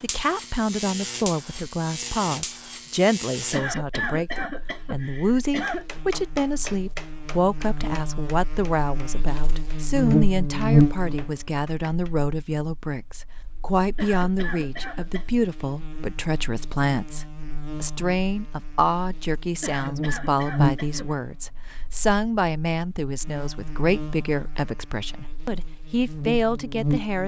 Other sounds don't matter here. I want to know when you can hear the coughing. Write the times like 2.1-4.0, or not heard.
3.5-5.8, 13.9-15.2, 19.6-21.1.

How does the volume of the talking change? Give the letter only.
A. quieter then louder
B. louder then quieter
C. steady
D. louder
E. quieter
C.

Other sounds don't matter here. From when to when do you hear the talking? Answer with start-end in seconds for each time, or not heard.
0.0-27.2.